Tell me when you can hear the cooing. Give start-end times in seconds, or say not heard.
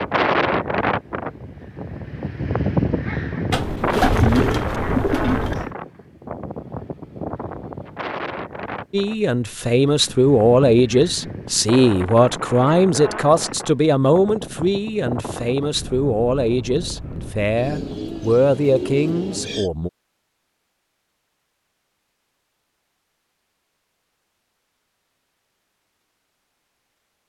3.5-5.7, 17.6-19.7.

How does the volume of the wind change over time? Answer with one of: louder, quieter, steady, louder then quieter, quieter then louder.
quieter.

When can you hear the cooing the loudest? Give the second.
4 s.